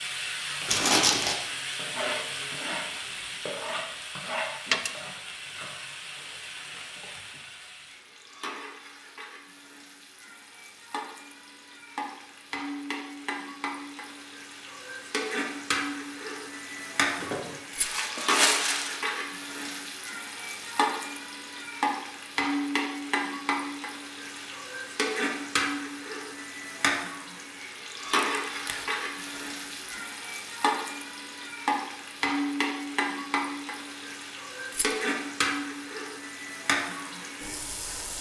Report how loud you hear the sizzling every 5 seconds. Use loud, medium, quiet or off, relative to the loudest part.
loud, medium, medium, loud, loud, loud, loud, loud.